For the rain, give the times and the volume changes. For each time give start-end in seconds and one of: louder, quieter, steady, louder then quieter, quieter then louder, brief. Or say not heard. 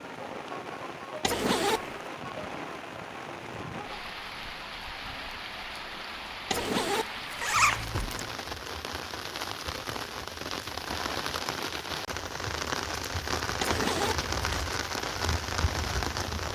0.0-16.5 louder.